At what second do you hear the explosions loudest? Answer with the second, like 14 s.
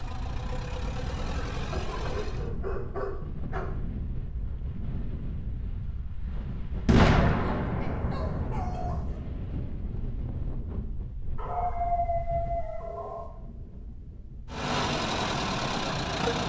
7 s.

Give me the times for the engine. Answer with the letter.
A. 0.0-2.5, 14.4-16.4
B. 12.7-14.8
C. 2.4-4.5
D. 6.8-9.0
A.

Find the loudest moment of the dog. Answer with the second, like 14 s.
12 s.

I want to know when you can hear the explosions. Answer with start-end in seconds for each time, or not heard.
6.8-9.0.